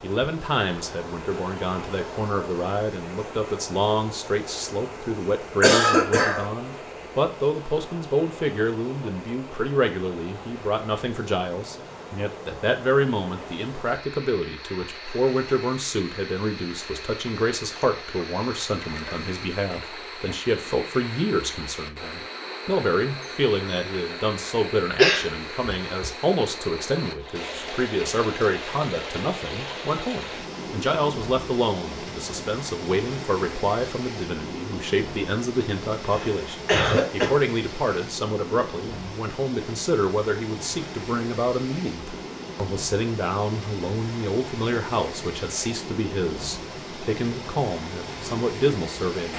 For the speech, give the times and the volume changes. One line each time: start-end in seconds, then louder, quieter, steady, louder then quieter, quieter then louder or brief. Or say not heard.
0.0-49.3 steady.